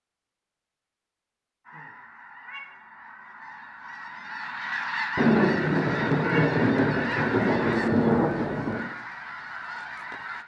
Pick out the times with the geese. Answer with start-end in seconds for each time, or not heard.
1.6-10.4.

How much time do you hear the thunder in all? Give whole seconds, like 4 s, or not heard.
4 s.